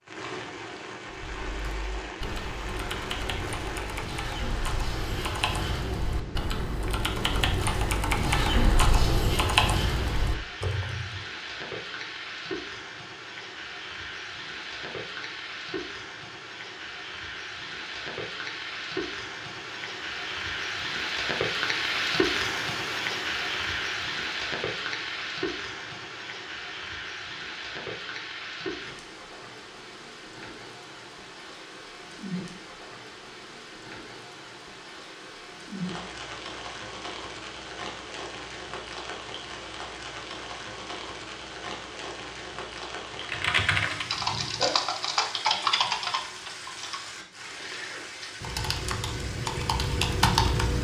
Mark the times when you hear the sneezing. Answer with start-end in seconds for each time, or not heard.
44.0-44.8.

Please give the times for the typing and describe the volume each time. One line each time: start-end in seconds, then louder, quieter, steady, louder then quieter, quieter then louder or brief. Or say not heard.
1.1-11.2 louder
43.2-50.7 quieter then louder.